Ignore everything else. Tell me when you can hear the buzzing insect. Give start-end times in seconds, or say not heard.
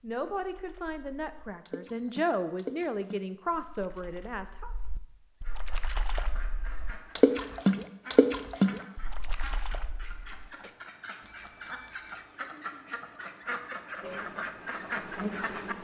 14.0-15.7.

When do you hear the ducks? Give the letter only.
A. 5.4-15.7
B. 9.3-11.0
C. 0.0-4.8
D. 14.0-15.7
A.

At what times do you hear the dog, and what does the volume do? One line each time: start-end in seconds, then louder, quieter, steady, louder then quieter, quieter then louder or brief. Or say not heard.
not heard.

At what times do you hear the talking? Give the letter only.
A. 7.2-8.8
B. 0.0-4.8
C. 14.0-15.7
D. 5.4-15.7
B.